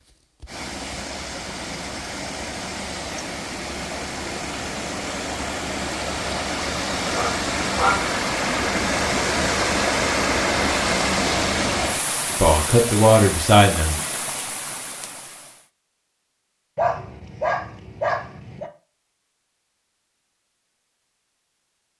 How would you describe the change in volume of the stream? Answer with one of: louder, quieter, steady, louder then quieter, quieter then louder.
louder then quieter.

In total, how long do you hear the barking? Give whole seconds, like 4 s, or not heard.
3 s.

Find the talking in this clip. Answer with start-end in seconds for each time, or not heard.
12.3-14.0.